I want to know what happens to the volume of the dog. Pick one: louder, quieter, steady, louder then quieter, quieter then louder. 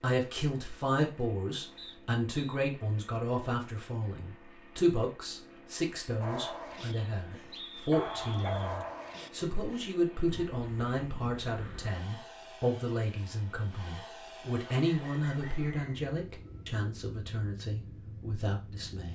louder then quieter.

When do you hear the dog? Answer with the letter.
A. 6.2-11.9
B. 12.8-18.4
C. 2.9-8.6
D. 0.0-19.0
A.